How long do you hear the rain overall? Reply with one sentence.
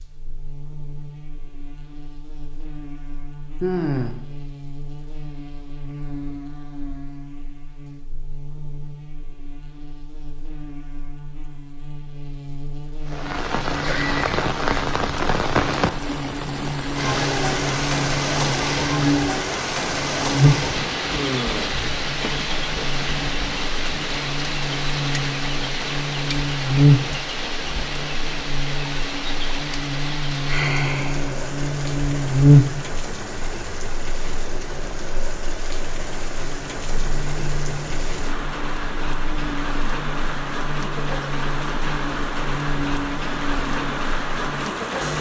You can hear the rain for 32 seconds altogether.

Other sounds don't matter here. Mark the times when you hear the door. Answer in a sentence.
You can't hear the door here.